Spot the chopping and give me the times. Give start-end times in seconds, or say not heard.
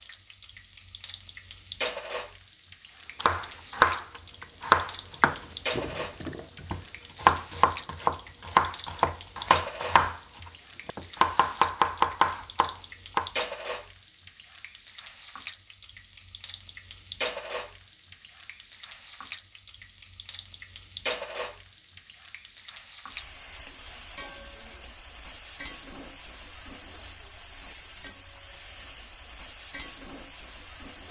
3.2-13.4.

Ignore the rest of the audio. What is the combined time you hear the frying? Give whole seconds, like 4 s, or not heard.
31 s.